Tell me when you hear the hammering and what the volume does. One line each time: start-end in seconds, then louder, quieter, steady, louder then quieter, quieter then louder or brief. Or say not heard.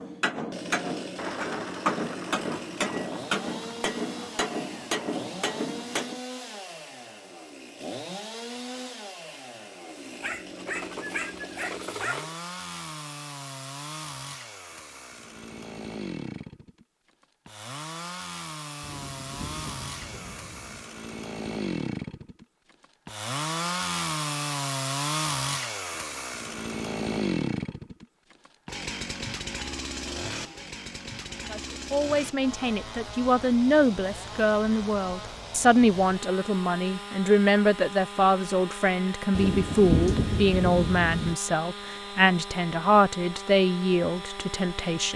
0.0-6.2 steady.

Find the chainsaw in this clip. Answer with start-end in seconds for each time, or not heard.
0.0-45.1.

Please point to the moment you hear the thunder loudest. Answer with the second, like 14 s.
40 s.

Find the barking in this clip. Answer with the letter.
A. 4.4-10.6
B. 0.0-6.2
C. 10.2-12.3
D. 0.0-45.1
C.